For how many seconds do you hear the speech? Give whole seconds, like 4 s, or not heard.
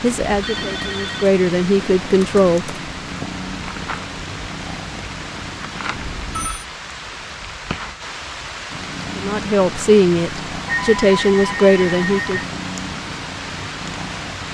6 s.